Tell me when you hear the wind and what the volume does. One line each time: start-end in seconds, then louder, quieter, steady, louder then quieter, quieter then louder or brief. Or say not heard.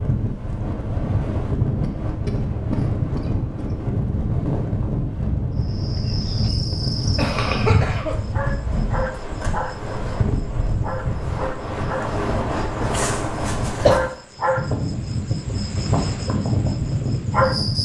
0.0-17.7 steady.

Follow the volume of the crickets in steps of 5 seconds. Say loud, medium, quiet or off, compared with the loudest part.
off, loud, loud, loud.